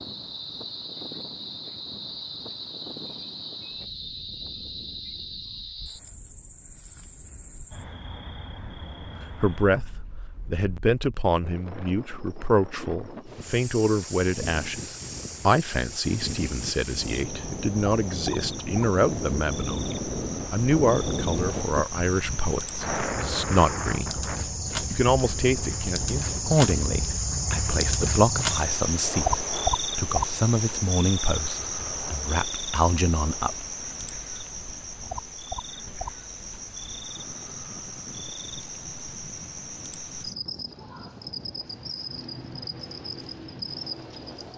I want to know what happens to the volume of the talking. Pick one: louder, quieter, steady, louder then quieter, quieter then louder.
steady.